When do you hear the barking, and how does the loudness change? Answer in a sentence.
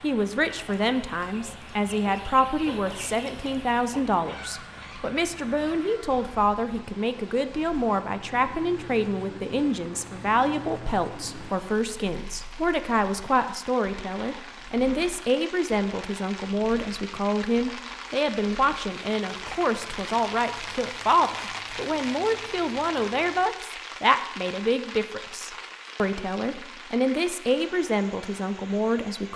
The barking can't be heard in this clip.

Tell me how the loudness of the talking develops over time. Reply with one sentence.
The volume of the talking stays about the same.